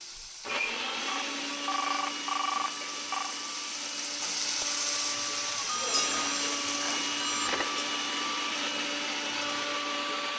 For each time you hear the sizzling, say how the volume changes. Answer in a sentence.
The sizzling can be heard from 0.0 to 10.3 s, getting louder then quieter.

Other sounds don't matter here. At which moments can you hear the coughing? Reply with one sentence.
The coughing can't be heard in this clip.